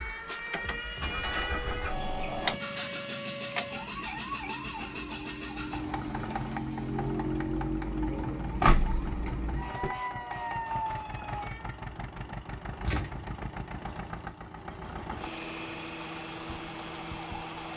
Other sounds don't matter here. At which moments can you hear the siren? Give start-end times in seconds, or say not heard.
0.0-11.8.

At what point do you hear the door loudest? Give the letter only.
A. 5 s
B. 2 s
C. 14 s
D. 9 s
D.